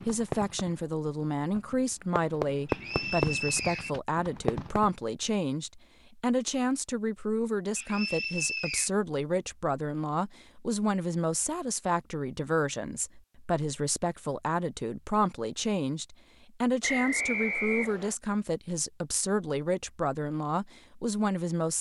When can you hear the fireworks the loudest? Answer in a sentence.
The loudest moment of the fireworks is at 3 seconds.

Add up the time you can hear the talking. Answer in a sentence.
You can hear the talking for 22 seconds altogether.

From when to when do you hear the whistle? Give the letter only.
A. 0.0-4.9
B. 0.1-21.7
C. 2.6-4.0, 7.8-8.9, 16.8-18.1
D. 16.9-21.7
C.